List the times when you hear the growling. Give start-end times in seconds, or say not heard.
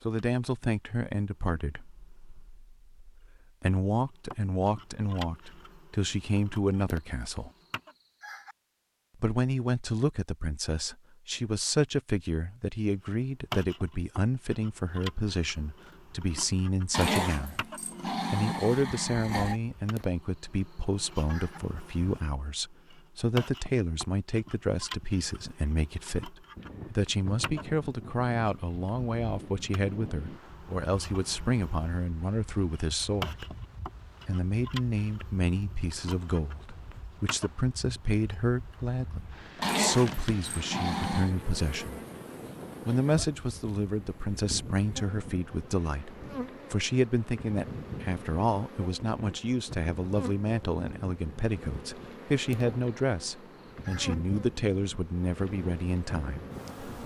16.9-19.6, 39.6-41.4.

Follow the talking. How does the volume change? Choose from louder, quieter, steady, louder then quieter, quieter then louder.
steady.